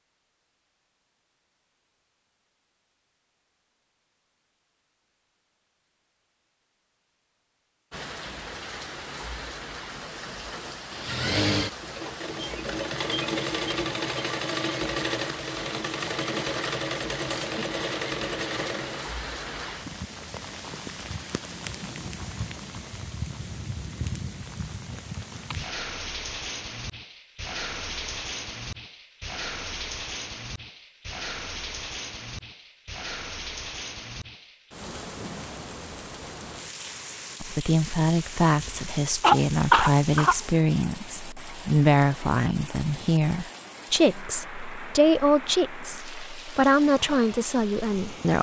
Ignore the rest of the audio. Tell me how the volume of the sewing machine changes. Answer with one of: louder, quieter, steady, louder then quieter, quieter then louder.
steady.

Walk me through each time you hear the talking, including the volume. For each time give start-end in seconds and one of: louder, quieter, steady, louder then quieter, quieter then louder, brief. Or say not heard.
37.4-48.3 steady.